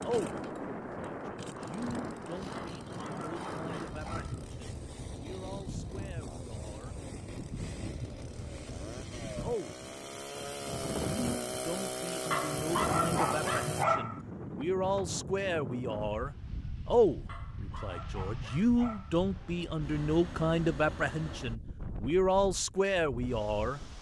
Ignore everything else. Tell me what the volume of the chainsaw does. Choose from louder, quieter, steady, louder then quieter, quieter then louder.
louder.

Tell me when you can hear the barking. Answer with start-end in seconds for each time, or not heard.
2.5-4.5, 12.3-14.2, 17.2-19.2.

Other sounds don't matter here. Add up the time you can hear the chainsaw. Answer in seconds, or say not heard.
14 s.